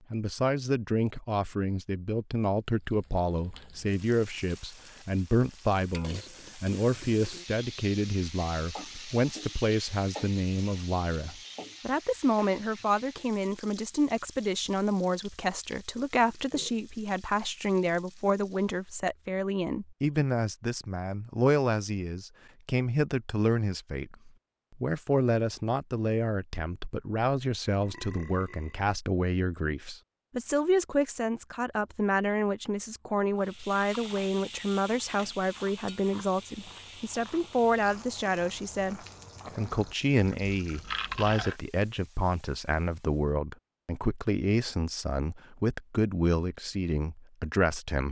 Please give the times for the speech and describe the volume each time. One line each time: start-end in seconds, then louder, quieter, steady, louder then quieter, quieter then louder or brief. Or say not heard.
0.1-48.0 steady.